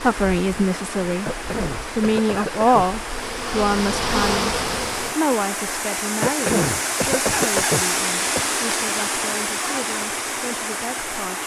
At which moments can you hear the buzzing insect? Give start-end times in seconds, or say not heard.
0.0-5.2.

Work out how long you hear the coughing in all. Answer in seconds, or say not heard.
4 s.